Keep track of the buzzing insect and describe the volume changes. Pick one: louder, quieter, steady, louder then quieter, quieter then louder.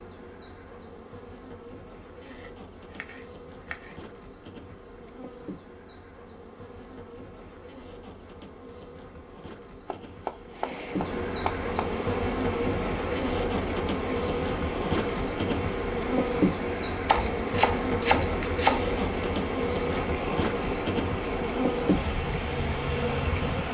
louder.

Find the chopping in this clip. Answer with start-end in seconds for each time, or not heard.
2.2-4.0, 9.9-11.8, 17.1-18.9.